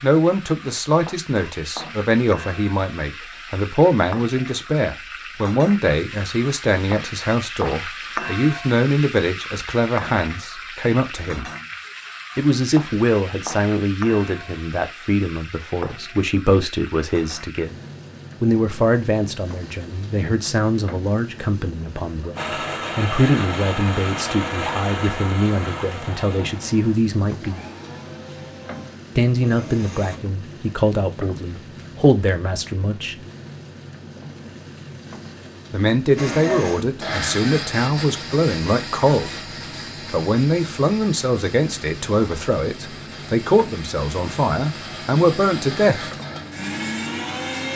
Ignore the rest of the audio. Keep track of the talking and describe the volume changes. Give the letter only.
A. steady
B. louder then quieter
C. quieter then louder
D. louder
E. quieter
A.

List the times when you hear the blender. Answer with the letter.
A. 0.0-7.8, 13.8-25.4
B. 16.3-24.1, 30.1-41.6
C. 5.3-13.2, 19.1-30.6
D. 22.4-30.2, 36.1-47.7
D.